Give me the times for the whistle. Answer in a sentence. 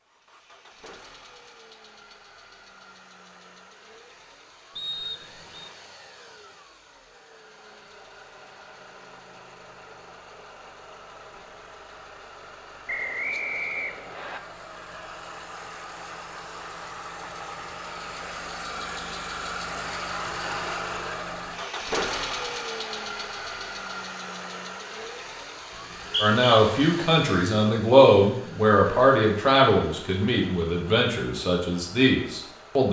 The whistle can be heard from 4.8 to 5.7 s, from 12.8 to 14.4 s and from 25.7 to 26.4 s.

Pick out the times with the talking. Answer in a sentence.
You can hear the talking from 26.2 to 32.8 s.